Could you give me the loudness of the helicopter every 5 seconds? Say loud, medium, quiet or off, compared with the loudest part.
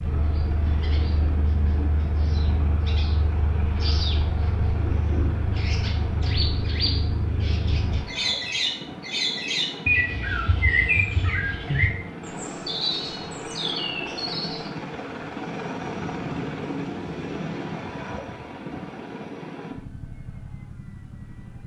medium, medium, loud, loud, medium.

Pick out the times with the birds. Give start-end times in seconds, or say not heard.
0.0-14.7.